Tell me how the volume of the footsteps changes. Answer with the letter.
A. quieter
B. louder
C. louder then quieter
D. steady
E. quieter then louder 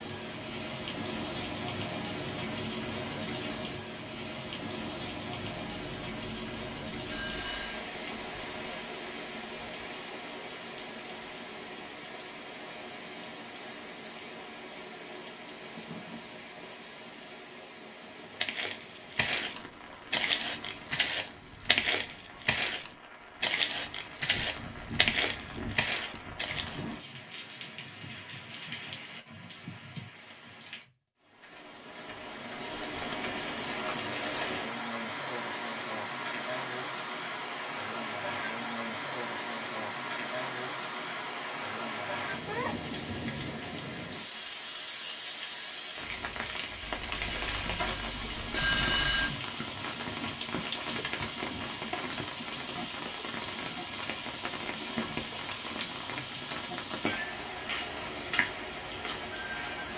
D.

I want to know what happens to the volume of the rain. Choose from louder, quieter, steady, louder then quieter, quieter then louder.
quieter then louder.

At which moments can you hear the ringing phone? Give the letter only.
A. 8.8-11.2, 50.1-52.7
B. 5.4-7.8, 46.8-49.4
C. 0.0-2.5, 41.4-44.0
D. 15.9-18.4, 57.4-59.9
B.